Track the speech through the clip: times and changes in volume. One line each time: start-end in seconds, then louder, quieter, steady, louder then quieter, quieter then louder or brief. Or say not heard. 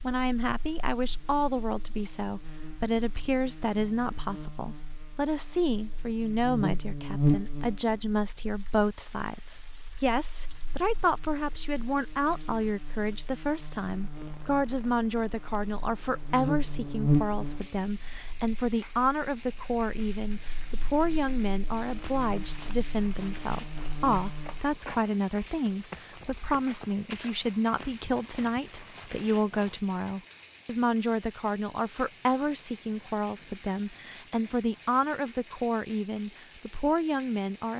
0.0-37.7 steady.